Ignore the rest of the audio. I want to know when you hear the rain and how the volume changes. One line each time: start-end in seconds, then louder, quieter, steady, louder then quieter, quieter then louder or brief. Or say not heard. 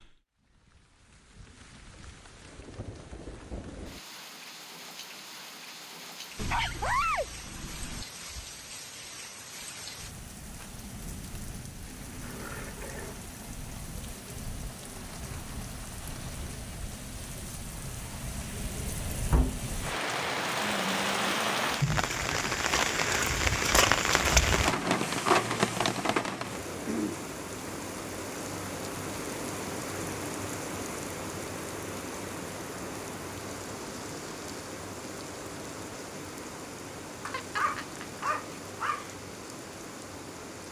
0.0-40.6 louder then quieter.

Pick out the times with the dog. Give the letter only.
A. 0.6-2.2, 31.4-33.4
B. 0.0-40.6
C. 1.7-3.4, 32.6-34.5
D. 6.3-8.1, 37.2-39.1
D.